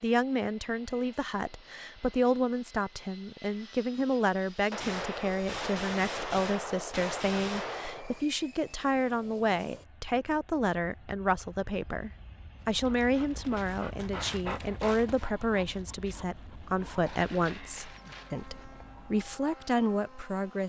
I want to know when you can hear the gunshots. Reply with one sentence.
The gunshots can be heard from 4.7 to 8.2 s.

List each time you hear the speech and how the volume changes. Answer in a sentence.
You can hear the speech from 0.0 to 20.6 s, at a steady volume.